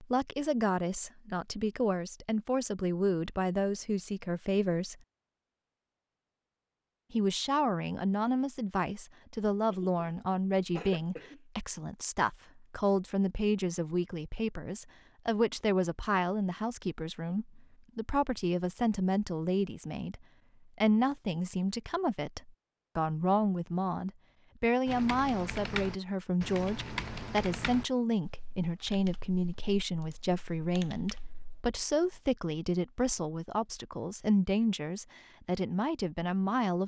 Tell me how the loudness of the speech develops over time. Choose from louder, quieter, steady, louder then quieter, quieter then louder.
steady.